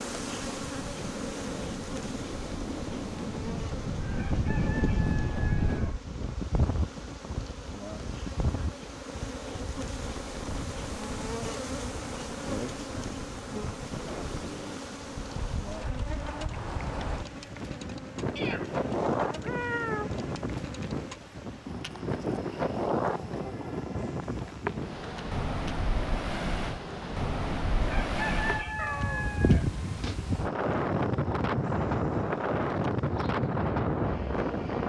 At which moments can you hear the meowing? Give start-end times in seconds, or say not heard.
4.0-6.0, 18.4-20.1, 28.8-30.2.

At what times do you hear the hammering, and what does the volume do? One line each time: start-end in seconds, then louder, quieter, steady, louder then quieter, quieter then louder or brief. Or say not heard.
not heard.